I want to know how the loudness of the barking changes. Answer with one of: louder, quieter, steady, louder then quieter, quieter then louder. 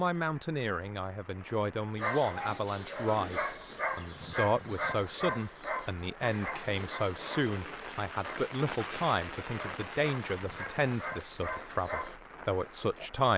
quieter then louder.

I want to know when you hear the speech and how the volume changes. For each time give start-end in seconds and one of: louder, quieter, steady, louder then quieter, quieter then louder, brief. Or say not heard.
0.0-13.3 steady.